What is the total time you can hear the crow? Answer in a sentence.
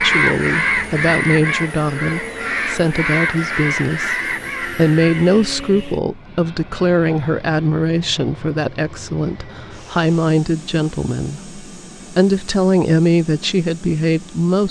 The crow can be heard for 6 seconds in total.